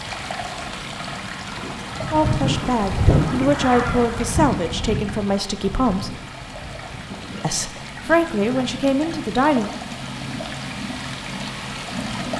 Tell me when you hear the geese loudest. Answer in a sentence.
The volume of the geese peaks at 3 seconds.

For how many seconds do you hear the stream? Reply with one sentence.
The stream can be heard for 12 seconds in total.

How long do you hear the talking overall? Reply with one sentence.
You can hear the talking for 6 seconds altogether.